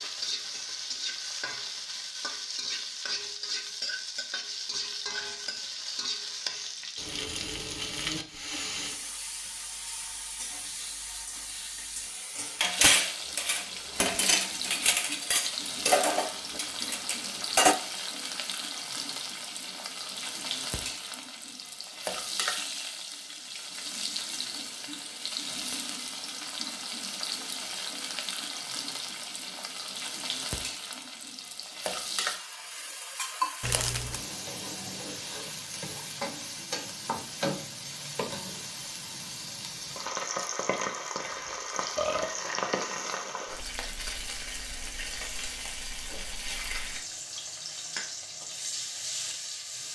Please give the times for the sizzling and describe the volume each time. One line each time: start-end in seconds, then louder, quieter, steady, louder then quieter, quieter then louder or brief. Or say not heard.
0.0-49.9 steady.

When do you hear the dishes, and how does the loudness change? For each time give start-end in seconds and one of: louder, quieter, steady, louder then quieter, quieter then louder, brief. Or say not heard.
12.6-17.8 louder then quieter.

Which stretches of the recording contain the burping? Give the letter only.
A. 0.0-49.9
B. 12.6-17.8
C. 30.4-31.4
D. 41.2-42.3
D.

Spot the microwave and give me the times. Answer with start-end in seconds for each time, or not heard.
not heard.